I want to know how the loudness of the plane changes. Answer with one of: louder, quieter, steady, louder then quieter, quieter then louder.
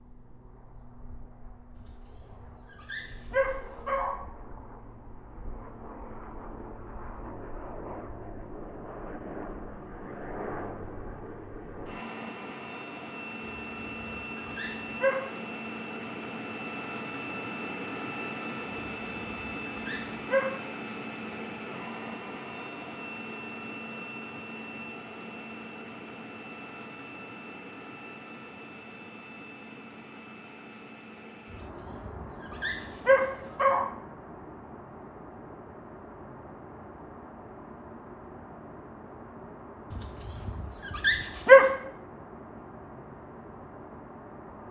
louder then quieter.